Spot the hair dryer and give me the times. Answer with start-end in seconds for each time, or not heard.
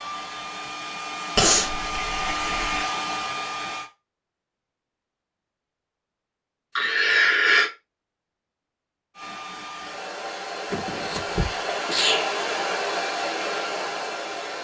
0.0-3.9, 9.2-14.5.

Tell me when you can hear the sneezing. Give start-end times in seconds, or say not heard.
1.4-2.9, 6.8-7.7, 10.7-12.3.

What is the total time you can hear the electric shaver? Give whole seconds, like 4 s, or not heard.
not heard.